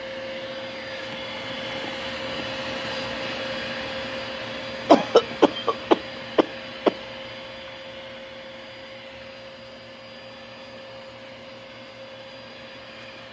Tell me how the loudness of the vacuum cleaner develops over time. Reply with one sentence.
The loudness of the vacuum cleaner goes down.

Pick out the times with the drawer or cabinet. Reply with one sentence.
The drawer or cabinet can't be heard in this clip.